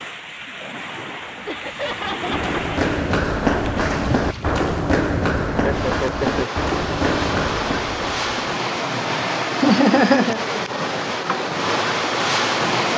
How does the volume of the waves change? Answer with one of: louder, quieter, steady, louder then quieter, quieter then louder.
louder.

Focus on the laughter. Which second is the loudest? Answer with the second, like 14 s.
10 s.